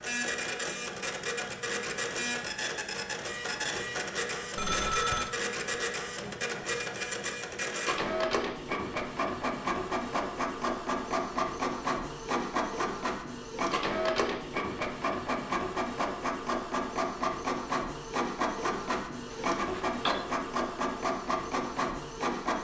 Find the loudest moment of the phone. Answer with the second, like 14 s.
5 s.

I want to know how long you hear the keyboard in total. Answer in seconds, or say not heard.
not heard.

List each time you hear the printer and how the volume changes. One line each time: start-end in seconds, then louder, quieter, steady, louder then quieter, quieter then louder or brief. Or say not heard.
0.0-22.5 steady.